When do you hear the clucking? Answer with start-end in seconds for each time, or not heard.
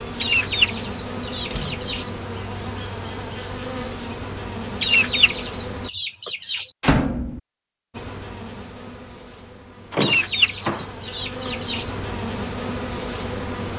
0.2-2.1, 4.8-6.7, 10.0-11.9.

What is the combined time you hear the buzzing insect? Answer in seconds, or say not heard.
12 s.